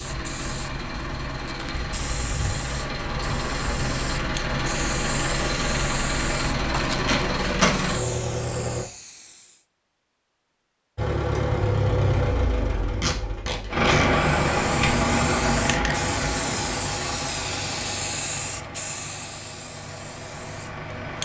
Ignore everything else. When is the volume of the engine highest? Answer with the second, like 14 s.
14 s.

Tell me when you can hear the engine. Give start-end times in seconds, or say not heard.
0.0-8.8, 10.9-21.1.